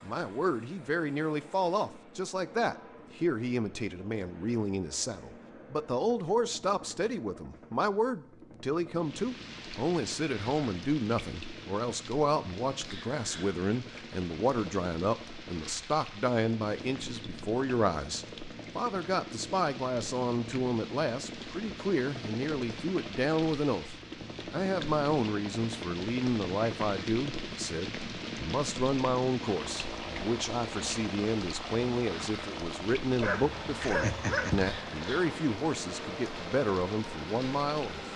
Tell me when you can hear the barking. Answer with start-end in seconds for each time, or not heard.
33.2-34.8.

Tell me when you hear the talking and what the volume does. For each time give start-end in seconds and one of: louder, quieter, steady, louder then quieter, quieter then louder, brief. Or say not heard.
0.0-38.1 steady.